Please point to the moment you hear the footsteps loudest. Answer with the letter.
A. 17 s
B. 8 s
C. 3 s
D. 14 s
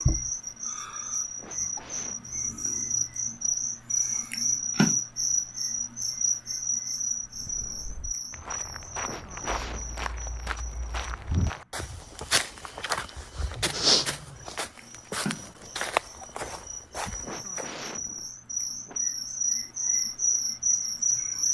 D.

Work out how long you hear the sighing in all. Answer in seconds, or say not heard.
4 s.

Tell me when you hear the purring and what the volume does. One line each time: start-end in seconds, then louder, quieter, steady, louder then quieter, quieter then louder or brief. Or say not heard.
not heard.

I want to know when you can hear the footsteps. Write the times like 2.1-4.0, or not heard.
7.2-17.9.